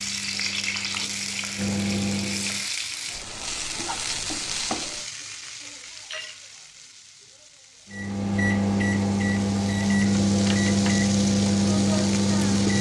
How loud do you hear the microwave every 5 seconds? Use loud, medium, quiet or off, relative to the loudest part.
medium, loud, loud.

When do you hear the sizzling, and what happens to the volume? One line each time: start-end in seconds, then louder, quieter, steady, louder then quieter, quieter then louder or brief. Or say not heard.
0.0-12.7 quieter then louder.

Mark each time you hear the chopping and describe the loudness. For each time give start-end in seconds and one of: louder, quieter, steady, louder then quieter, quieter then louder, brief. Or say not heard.
not heard.